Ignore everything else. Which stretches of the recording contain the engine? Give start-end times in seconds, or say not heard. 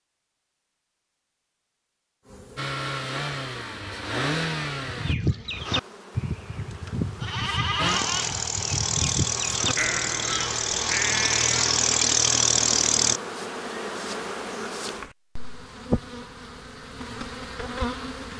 2.5-5.2, 7.8-13.2.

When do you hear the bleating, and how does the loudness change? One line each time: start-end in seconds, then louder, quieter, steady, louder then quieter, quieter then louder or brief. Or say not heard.
4.8-11.7 steady.